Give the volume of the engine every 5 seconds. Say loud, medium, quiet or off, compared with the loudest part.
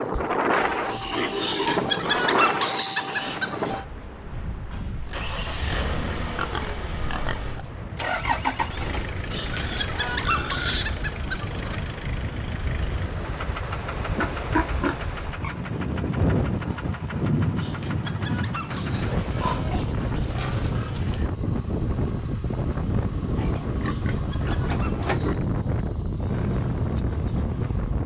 loud, loud, medium, medium, medium, medium.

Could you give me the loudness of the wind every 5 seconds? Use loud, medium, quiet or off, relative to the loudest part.
loud, medium, medium, loud, loud, loud.